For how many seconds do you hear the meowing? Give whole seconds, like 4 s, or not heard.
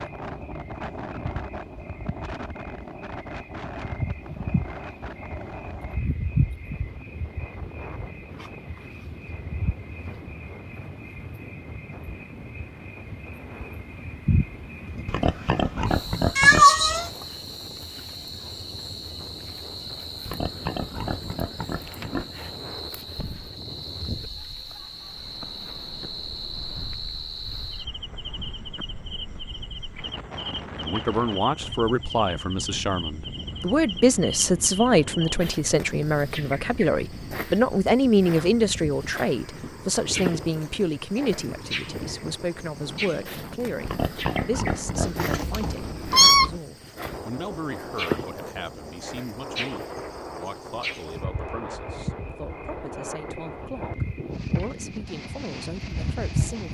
2 s.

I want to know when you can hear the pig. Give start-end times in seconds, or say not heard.
15.1-16.6, 20.2-22.2, 43.9-45.5.